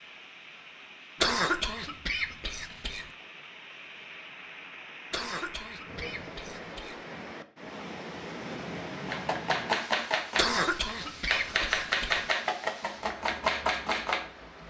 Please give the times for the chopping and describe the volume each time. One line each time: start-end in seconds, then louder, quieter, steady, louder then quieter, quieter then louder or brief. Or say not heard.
9.1-14.2 steady.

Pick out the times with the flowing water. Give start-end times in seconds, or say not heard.
0.0-14.6.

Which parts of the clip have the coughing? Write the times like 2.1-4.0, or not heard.
1.2-3.1, 5.1-7.0, 10.3-12.2.